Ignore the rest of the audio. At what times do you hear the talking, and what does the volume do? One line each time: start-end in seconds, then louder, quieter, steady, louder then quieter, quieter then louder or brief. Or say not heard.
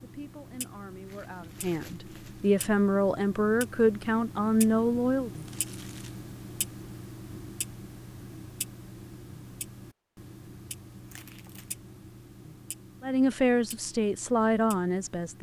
0.0-5.3 louder
13.0-15.3 brief.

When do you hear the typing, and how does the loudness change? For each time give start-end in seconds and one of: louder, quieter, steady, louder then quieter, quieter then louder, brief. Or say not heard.
not heard.